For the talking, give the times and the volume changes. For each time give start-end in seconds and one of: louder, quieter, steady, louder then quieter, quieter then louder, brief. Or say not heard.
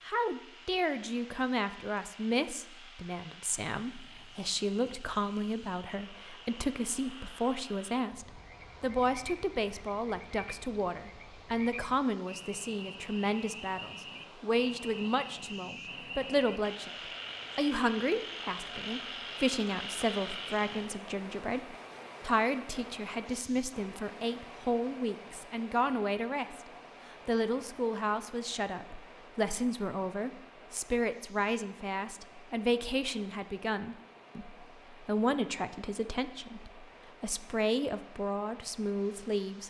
0.0-16.9 steady
17.6-39.6 steady.